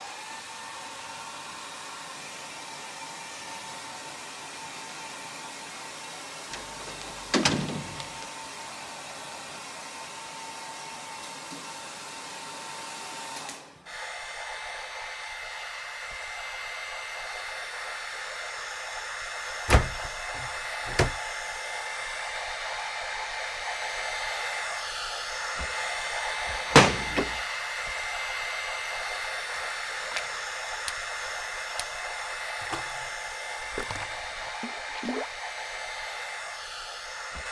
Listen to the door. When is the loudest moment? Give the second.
27 s.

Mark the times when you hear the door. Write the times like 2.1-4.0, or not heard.
6.5-8.2, 19.6-21.1, 26.4-27.4.